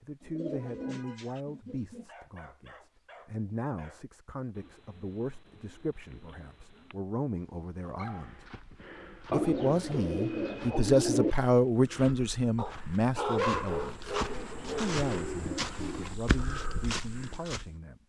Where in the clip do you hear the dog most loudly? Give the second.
13 s.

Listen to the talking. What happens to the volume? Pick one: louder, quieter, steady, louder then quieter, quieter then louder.
louder then quieter.